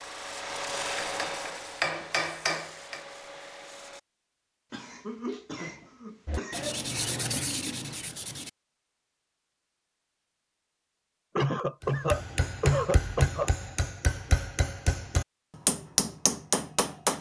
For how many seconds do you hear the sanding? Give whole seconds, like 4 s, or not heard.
6 s.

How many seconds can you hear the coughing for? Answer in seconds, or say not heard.
4 s.